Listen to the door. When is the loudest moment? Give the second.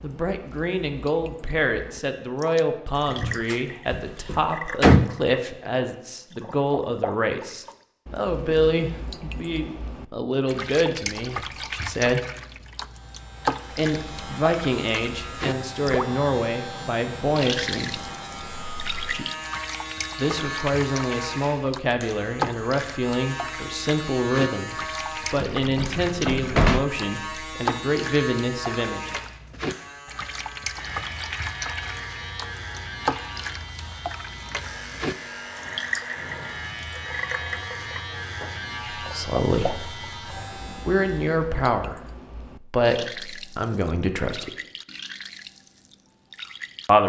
5 s.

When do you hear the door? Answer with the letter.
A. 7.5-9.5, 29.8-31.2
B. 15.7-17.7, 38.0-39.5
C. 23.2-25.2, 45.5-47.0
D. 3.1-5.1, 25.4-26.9
D.